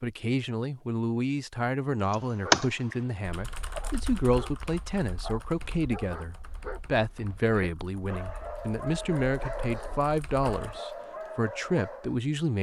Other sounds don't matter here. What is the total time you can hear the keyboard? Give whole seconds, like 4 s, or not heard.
9 s.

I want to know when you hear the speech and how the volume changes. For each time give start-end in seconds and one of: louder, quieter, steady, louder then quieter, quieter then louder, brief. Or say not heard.
0.0-12.5 steady.